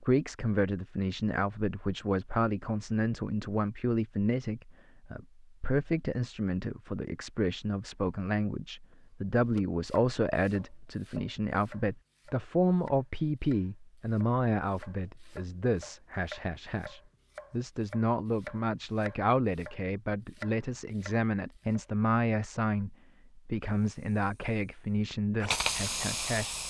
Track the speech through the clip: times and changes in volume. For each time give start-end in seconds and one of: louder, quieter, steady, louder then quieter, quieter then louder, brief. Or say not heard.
0.0-26.6 steady.